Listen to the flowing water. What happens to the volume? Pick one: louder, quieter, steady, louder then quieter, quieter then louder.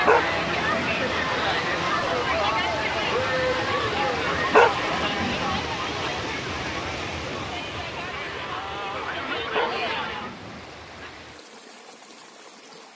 quieter.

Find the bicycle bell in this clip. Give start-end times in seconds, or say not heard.
not heard.